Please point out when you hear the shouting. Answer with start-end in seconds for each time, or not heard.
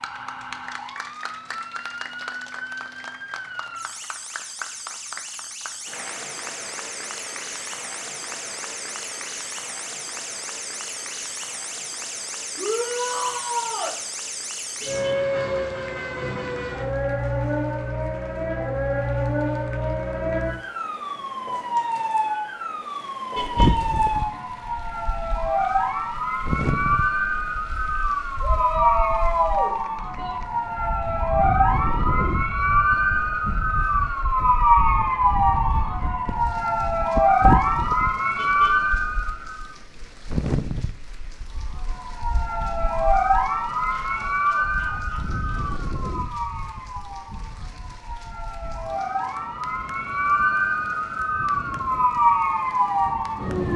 12.6-13.9, 28.4-30.4, 43.9-45.9.